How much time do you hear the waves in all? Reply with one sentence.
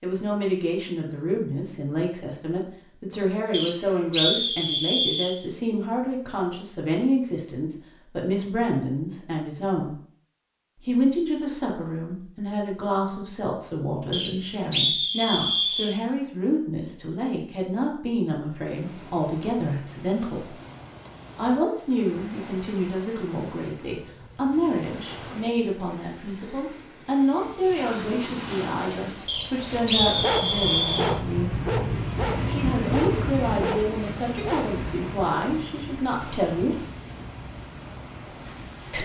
The waves can be heard for 20 seconds in total.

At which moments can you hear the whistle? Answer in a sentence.
You can hear the whistle from 3.5 to 5.3 s, from 14.1 to 15.9 s and from 29.2 to 31.1 s.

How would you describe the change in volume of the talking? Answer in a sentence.
The volume of the talking stays about the same.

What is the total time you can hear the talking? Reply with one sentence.
The talking can be heard for 34 seconds in total.